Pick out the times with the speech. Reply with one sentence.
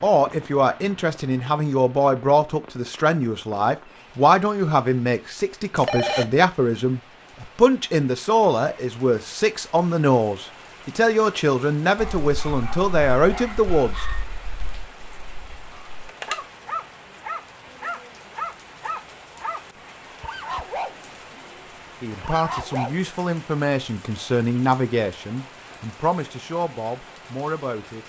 The speech can be heard from 0.0 to 14.1 s and from 22.0 to 28.0 s.